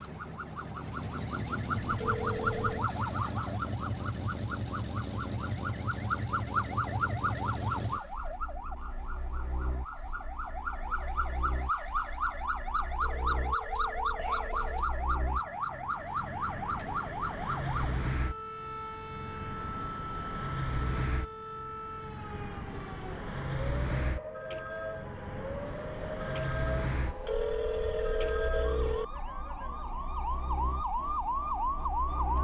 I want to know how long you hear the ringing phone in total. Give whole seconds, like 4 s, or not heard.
5 s.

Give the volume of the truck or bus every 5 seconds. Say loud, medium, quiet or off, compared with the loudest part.
loud, loud, quiet, loud, loud, loud, medium.